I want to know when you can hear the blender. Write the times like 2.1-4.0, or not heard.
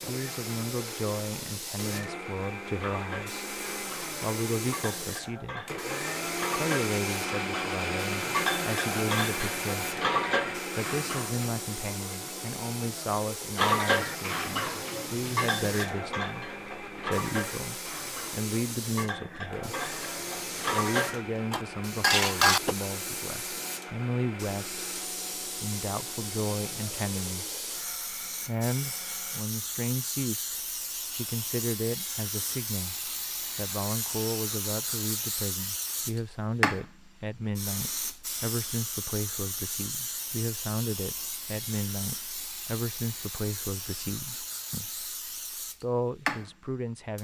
0.0-29.4.